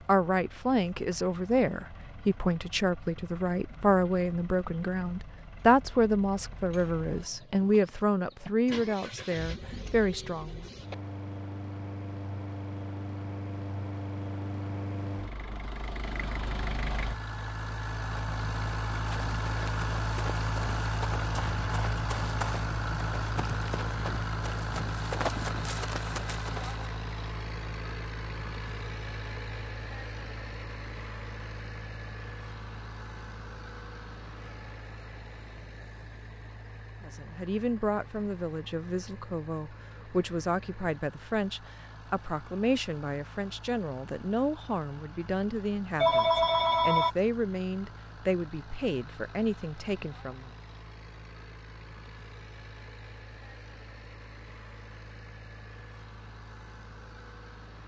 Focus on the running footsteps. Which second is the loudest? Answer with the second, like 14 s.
25 s.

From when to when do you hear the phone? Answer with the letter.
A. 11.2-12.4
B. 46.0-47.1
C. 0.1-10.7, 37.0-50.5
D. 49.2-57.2
B.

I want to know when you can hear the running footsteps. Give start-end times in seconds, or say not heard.
18.9-26.9.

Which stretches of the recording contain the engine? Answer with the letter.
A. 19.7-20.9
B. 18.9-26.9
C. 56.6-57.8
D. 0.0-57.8
D.